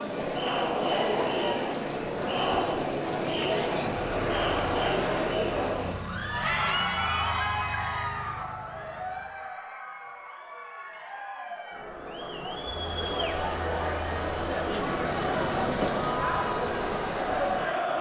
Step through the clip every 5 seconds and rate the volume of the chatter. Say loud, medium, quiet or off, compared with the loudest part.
loud, loud, medium, loud.